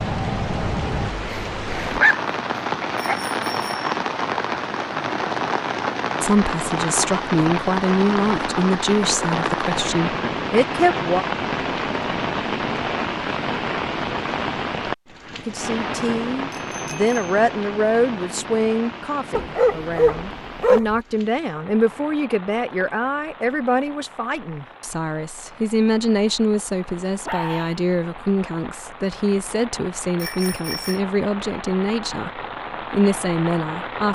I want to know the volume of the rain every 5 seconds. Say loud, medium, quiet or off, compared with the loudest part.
loud, loud, loud, medium, quiet, quiet, medium.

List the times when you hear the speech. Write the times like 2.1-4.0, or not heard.
6.2-11.2, 15.4-34.1.